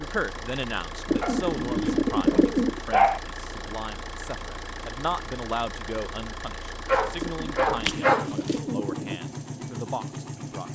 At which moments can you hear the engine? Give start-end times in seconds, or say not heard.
0.0-10.6.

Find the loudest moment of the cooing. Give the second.
2 s.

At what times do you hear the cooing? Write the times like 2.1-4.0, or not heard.
1.1-2.8, 7.2-9.2.